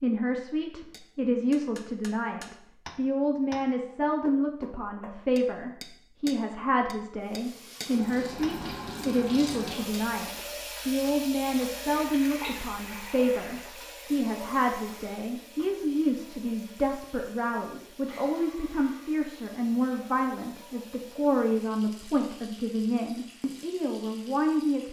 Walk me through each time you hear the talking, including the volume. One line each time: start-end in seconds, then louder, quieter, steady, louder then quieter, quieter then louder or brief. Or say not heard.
0.0-24.8 steady.